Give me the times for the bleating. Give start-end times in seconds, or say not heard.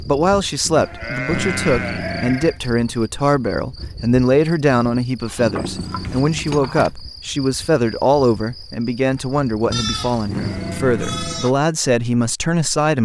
0.8-2.6, 5.2-7.0, 9.7-11.6.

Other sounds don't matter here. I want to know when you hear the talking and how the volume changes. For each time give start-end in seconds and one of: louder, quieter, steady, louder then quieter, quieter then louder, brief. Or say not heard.
0.1-13.0 steady.